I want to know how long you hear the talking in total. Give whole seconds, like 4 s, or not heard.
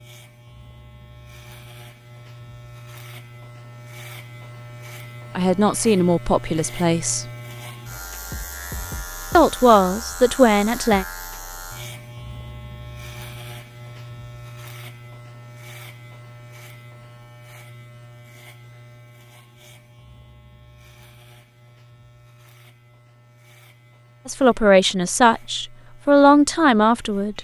7 s.